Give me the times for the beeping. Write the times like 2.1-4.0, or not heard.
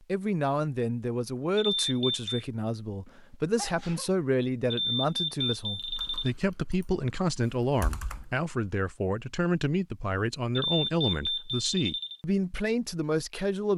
1.8-2.2, 4.7-6.3, 10.6-12.2.